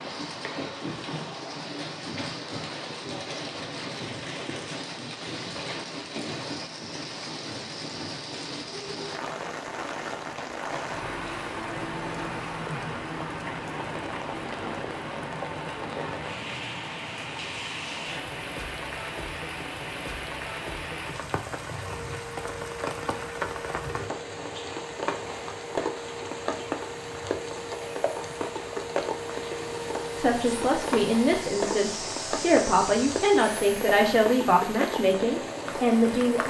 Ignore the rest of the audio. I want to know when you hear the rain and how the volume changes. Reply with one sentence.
You can hear the rain from 0.0 to 36.4 s, at a steady volume.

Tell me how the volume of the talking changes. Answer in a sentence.
The volume of the talking stays about the same.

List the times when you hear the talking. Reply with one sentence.
The talking can be heard from 30.1 to 36.4 s.